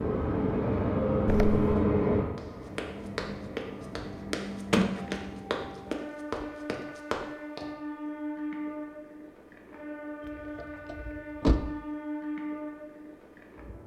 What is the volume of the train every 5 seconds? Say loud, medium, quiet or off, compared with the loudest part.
loud, medium, medium.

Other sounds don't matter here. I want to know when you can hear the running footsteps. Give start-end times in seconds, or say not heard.
2.4-7.7.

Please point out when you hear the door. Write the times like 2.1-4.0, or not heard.
1.2-1.8, 4.7-5.2, 10.2-11.7.